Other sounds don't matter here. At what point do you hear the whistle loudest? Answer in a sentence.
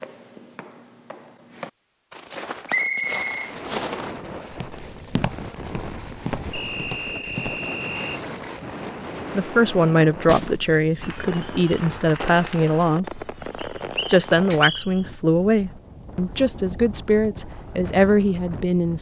The volume of the whistle peaks at 3 seconds.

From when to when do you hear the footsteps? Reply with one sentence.
You can hear the footsteps from 0.0 to 7.6 s.